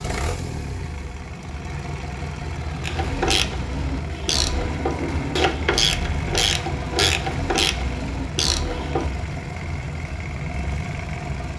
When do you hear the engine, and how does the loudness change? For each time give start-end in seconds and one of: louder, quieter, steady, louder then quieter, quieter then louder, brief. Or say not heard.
0.0-11.5 steady.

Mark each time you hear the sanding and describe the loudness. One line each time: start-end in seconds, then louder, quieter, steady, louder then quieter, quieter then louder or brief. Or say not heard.
not heard.